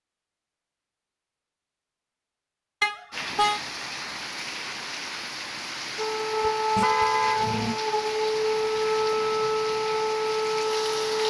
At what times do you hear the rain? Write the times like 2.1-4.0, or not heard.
3.1-11.2.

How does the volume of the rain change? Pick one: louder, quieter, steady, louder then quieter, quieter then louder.
steady.